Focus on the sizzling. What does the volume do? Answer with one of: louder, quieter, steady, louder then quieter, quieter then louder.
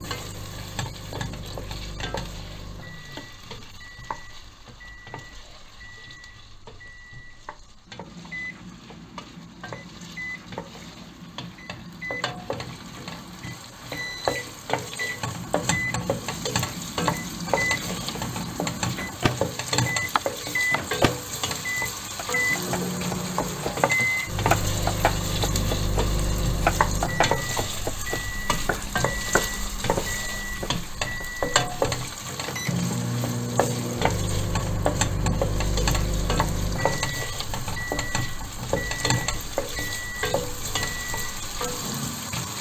louder.